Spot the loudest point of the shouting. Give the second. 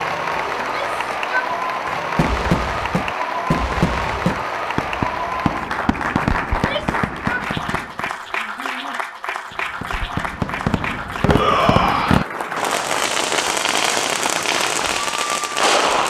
12 s.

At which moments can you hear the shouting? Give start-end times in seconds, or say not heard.
0.6-1.6, 6.5-9.0, 11.2-12.2.